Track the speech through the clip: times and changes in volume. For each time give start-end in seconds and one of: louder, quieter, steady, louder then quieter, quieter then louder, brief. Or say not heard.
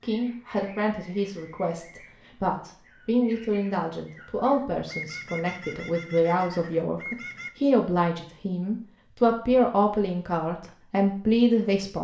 0.0-11.9 louder.